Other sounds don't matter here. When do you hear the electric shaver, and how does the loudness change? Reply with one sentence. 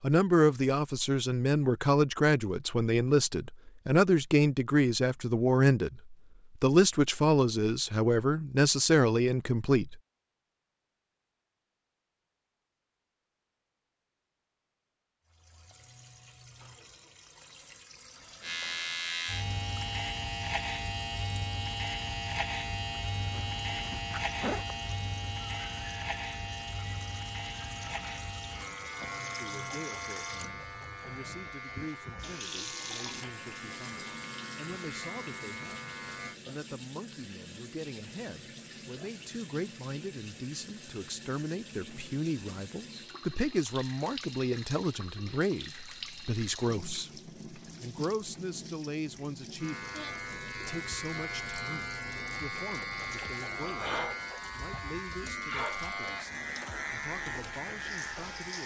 The electric shaver can be heard from 18.4 to 36.4 s, getting quieter; and from 49.6 to 58.6 s, at a steady volume.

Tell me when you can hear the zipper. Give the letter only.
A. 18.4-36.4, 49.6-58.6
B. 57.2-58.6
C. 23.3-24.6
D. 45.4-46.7
C.